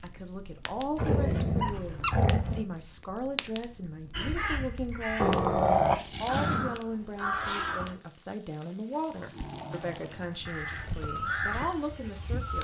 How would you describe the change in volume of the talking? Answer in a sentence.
The volume of the talking stays about the same.